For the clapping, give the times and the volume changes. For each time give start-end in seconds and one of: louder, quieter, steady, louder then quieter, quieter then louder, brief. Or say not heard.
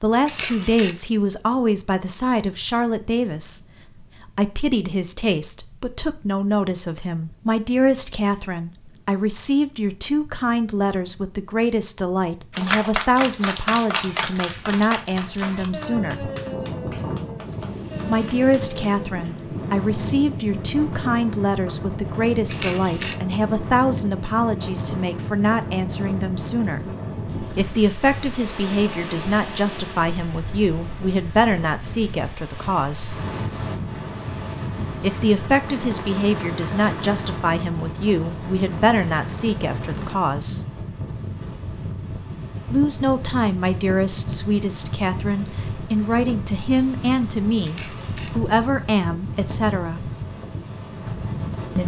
12.5-19.1 quieter.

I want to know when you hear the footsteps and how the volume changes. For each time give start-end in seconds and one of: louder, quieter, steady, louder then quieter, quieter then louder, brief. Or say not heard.
not heard.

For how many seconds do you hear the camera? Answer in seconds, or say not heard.
2 s.